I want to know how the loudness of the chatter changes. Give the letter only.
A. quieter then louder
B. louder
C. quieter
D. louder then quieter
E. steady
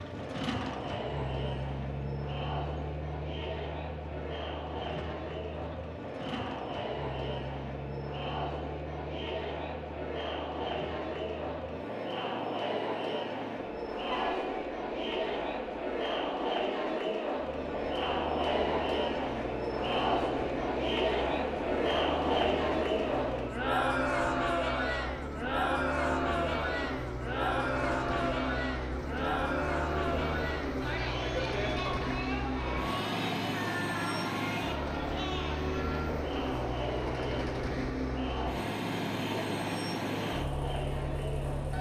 D.